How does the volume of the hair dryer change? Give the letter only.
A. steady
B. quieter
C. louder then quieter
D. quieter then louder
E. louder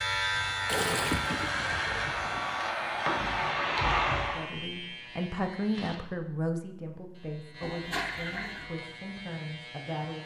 E.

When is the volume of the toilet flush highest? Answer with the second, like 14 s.
1 s.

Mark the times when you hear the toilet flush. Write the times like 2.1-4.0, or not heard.
0.7-2.6, 7.6-8.7.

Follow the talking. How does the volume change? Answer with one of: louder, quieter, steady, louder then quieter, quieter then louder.
quieter.